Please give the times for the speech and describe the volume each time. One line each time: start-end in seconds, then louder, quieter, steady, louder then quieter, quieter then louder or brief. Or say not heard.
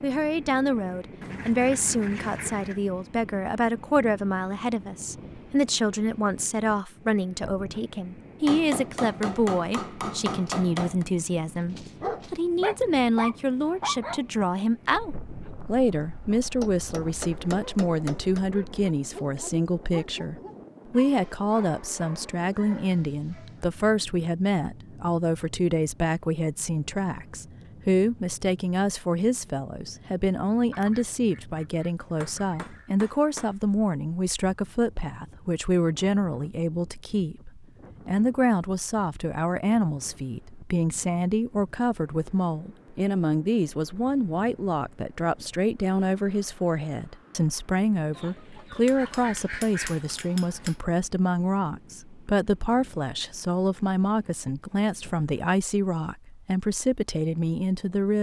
0.0-58.1 steady.